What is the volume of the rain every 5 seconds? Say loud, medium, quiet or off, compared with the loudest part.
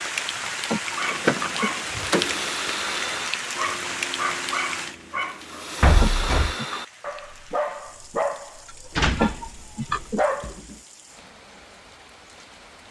loud, quiet, quiet.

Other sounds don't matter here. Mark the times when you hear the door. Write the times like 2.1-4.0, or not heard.
1.1-2.5, 5.8-6.5, 8.9-10.8.